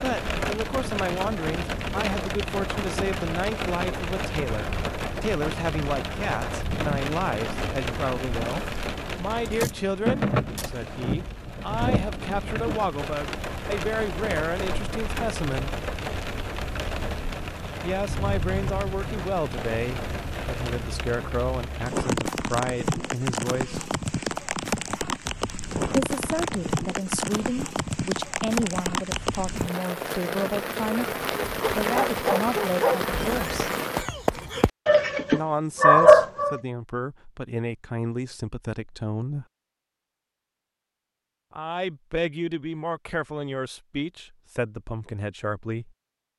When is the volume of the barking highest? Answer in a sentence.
The volume of the barking peaks at 36 seconds.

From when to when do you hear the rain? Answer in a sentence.
The rain can be heard from 0.0 to 34.0 s.